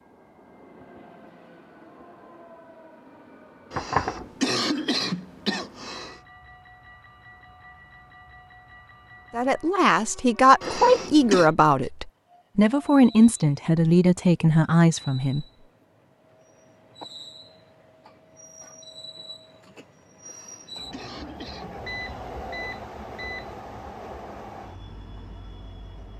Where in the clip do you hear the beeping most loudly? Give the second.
4 s.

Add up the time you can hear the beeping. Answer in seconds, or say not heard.
2 s.